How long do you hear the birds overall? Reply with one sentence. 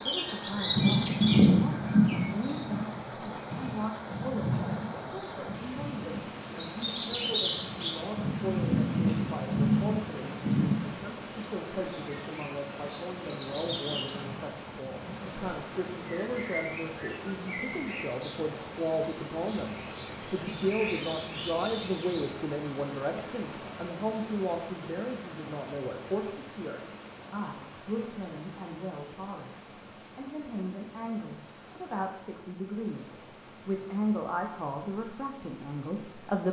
You can hear the birds for 22 seconds altogether.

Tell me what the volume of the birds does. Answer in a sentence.
The loudness of the birds goes down.